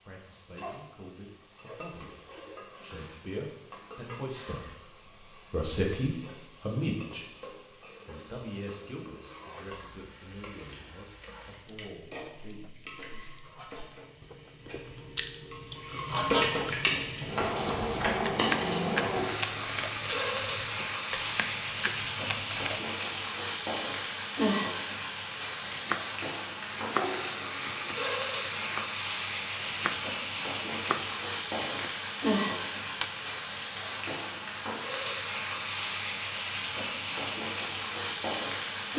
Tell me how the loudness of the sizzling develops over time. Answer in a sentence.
The volume of the sizzling goes up.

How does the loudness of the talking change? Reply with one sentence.
The volume of the talking goes up, then down.